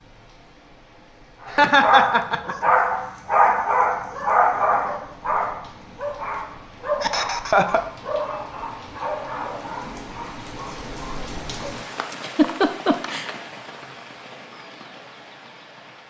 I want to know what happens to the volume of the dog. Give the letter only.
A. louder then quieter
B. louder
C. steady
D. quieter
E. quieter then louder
D.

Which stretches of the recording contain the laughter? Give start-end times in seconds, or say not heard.
1.5-2.7, 7.0-7.8, 12.1-13.3.